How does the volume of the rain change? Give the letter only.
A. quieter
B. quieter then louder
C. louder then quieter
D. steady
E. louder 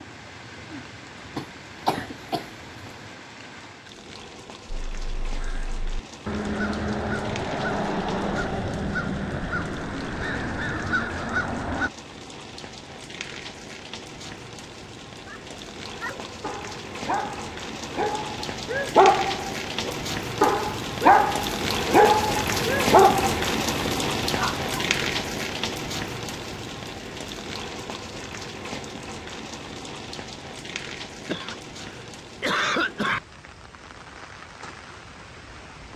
C.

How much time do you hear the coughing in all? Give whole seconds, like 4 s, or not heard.
3 s.